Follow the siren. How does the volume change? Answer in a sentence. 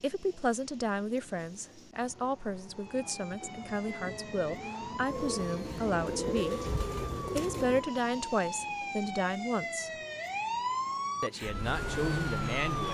The loudness of the siren goes up.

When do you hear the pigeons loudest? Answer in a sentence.
The volume of the pigeons peaks at 6 seconds.